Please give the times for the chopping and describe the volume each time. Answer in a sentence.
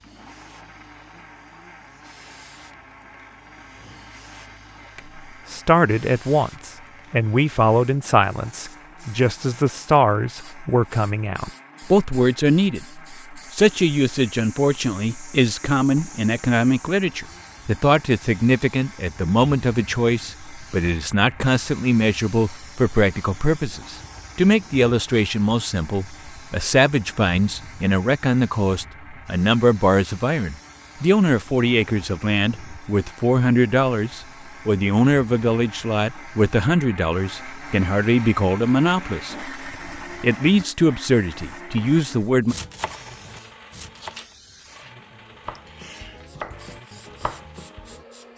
The chopping can be heard from 41.6 to 48.0 s, getting quieter then louder.